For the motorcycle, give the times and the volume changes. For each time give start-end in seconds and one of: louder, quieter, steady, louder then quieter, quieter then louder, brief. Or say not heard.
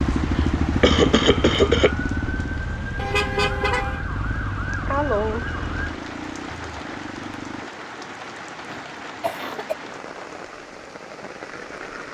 0.0-7.7 quieter.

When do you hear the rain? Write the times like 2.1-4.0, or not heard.
0.0-12.0.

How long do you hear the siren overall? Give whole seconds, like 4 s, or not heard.
6 s.